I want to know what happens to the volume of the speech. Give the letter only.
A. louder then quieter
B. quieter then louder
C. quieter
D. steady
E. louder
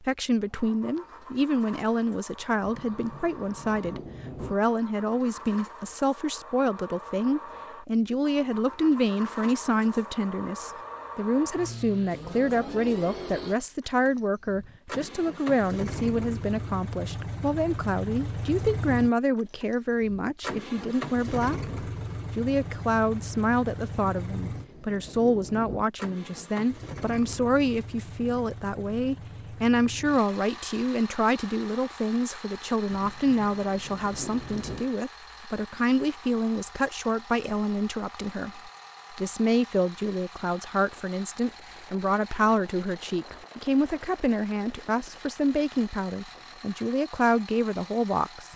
D.